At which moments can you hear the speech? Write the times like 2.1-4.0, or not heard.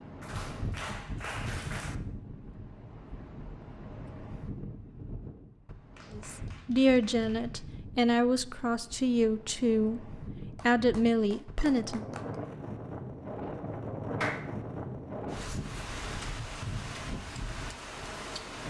6.1-12.2.